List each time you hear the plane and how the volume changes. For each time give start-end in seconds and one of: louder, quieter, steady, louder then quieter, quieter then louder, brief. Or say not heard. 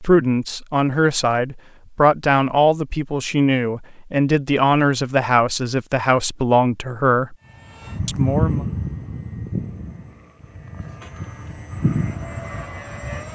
7.8-13.3 quieter then louder.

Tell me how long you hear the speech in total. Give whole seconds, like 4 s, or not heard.
8 s.